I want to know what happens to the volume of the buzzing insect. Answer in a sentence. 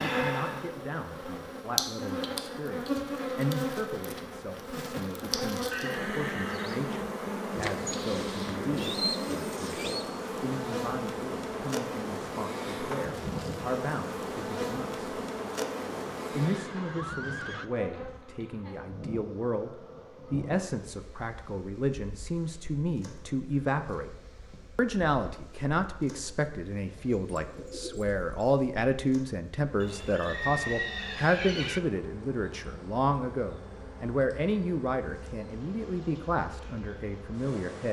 The loudness of the buzzing insect goes down, then up.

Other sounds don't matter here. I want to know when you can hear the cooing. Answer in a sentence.
You can hear the cooing from 7.5 to 10.1 s and from 27.4 to 28.3 s.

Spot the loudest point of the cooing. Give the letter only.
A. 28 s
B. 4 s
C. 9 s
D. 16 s
C.